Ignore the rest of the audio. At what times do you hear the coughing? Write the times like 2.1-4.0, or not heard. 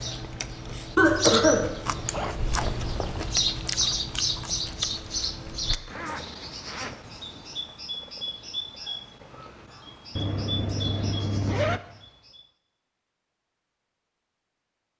0.9-1.7.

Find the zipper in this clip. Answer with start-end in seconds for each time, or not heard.
1.9-3.4, 5.7-7.0, 10.2-11.8.